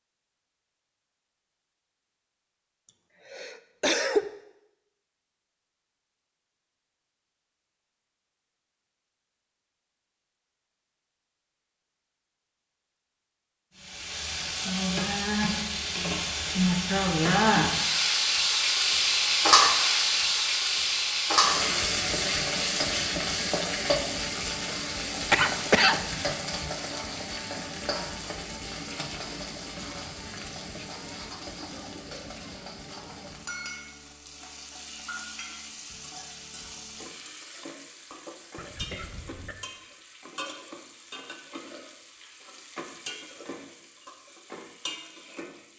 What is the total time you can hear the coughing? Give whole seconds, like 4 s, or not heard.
4 s.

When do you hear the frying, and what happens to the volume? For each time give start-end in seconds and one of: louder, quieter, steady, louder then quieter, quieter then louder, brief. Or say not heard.
13.8-45.7 quieter.